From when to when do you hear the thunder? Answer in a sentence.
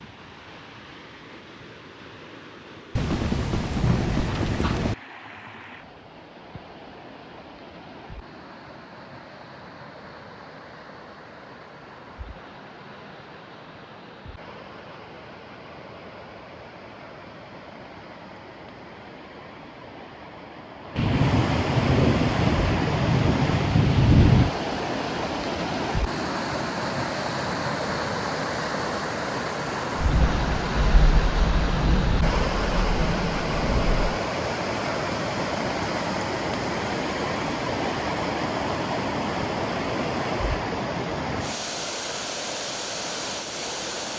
The thunder can be heard from 3.0 to 5.0 s, from 20.9 to 24.5 s and from 29.9 to 34.2 s.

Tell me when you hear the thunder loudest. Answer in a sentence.
The volume of the thunder peaks at 24 seconds.